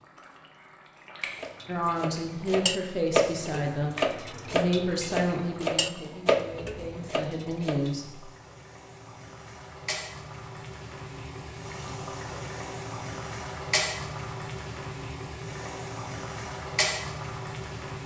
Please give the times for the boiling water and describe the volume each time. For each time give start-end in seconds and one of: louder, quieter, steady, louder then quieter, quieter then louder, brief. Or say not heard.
0.0-18.0 louder.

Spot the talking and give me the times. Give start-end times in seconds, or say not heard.
1.6-8.3.